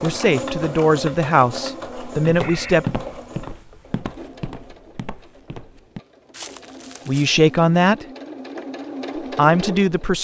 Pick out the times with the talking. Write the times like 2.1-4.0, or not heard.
0.0-2.9, 7.0-8.1, 9.3-10.1.